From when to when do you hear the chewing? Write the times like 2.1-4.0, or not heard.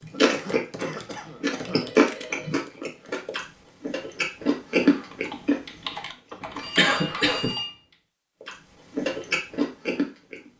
0.0-6.6, 8.4-10.5.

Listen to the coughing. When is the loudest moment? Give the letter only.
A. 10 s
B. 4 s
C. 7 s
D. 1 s
C.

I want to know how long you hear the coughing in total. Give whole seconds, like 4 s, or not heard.
3 s.